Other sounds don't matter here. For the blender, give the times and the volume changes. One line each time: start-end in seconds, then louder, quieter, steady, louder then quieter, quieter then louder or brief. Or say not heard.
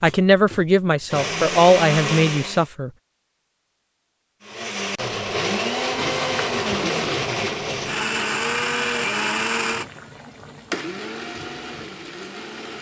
0.0-2.6 brief
4.4-12.7 quieter.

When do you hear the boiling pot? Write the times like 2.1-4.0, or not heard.
5.9-12.7.